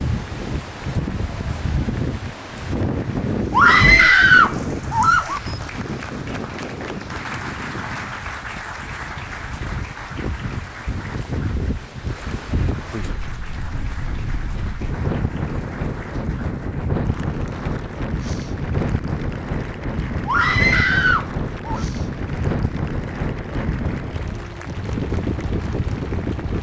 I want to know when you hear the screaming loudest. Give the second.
4 s.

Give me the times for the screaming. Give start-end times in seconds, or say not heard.
3.5-5.4, 20.2-21.9.